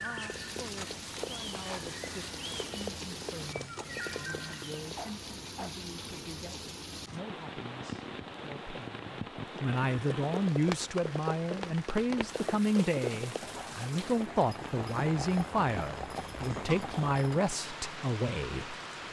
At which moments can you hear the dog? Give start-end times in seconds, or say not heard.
5.0-5.8.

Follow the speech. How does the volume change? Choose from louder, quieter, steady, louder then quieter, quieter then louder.
louder.